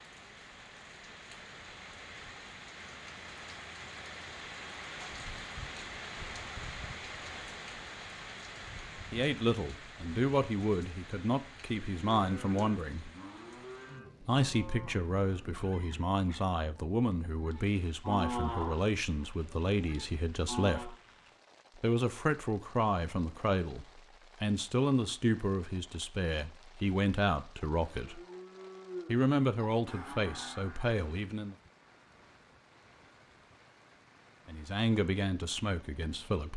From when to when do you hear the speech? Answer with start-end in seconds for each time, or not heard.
9.1-13.1, 14.2-20.9, 21.8-28.2, 29.1-31.6, 34.5-36.5.